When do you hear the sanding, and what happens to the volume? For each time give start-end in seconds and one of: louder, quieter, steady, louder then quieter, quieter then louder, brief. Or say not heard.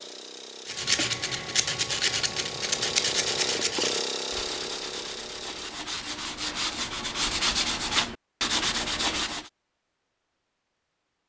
0.7-9.5 quieter then louder.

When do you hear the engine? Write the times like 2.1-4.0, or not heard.
0.0-5.8.